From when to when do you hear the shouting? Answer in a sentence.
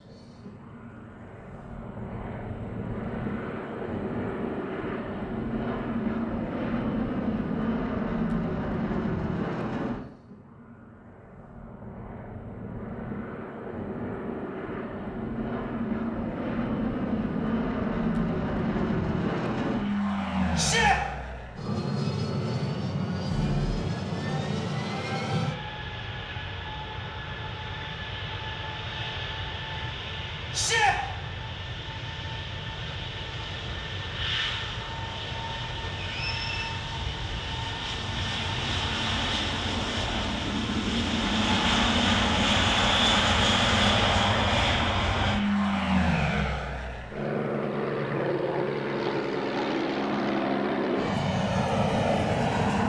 The shouting can be heard from 20.6 to 21.0 s and from 30.5 to 30.9 s.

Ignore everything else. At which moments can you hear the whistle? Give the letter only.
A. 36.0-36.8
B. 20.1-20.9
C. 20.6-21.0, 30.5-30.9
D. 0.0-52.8
A.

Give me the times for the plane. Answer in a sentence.
The plane can be heard from 0.0 to 52.8 s.